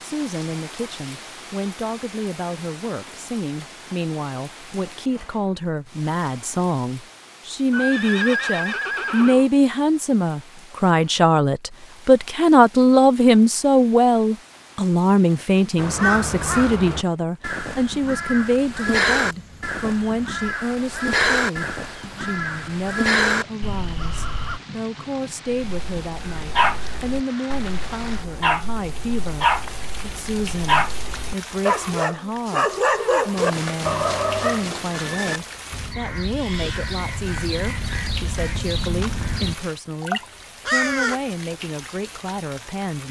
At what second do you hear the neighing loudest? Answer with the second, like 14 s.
8 s.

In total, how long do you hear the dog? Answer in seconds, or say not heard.
9 s.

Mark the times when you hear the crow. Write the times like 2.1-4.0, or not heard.
15.8-24.6, 35.7-41.2.